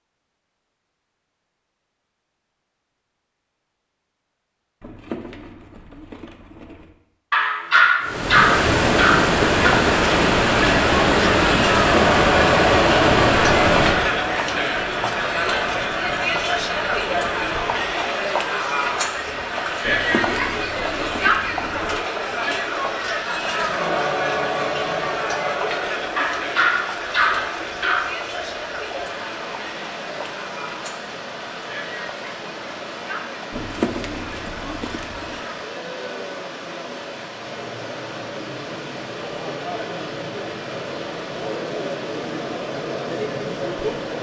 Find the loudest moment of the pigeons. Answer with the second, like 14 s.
34 s.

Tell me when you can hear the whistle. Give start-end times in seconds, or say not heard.
not heard.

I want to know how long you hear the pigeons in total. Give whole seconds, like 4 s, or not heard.
6 s.